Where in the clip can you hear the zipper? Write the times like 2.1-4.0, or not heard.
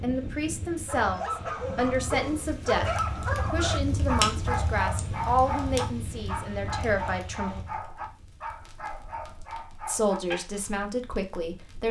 not heard.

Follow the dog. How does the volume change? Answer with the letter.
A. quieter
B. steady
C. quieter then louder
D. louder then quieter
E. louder
A.